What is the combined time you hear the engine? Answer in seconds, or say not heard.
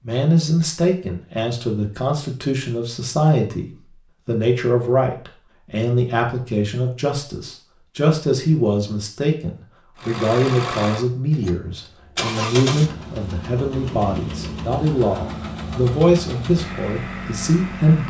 8 s.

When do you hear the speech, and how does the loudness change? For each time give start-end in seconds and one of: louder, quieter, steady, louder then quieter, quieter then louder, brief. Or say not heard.
0.0-18.0 steady.